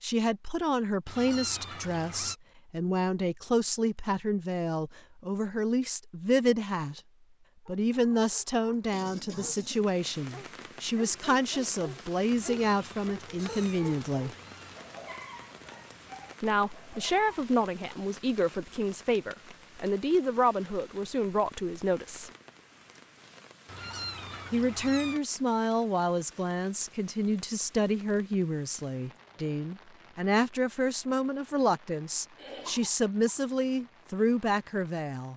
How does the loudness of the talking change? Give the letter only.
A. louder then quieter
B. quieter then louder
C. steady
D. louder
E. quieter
C.